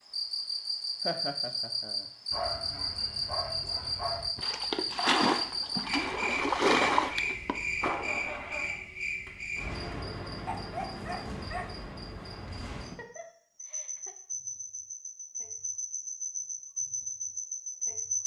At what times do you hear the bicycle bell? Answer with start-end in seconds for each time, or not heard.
not heard.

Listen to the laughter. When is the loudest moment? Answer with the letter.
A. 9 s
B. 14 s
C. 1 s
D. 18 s
C.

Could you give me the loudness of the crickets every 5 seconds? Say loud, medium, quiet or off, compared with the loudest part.
loud, loud, medium, loud.